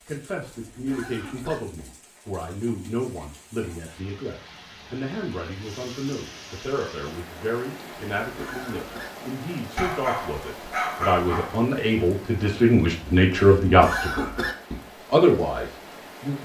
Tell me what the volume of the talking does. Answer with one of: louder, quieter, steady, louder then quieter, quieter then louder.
louder.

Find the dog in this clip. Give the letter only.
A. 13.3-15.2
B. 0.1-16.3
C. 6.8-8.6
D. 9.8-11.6
D.